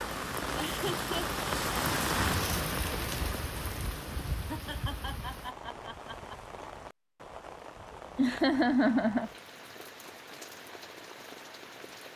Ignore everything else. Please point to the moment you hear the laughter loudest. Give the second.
9 s.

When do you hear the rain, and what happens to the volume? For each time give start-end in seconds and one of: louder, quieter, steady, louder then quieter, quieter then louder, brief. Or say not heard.
0.0-12.1 quieter.